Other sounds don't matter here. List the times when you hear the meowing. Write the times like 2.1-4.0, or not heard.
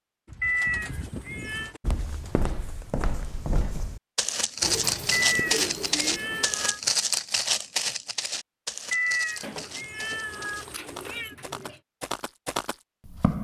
0.4-1.8, 5.1-6.8, 8.9-11.3.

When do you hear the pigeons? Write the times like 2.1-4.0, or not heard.
0.2-1.8, 4.6-6.5, 9.4-11.8.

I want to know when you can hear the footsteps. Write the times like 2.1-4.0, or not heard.
1.8-13.3.